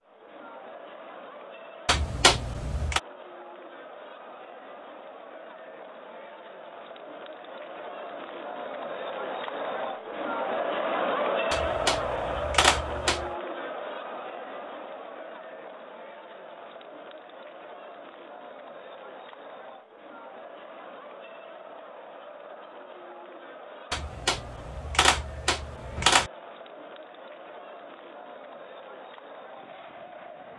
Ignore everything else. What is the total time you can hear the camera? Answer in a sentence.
The camera can be heard for 5 seconds in total.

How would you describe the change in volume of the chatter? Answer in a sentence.
The loudness of the chatter goes up, then down.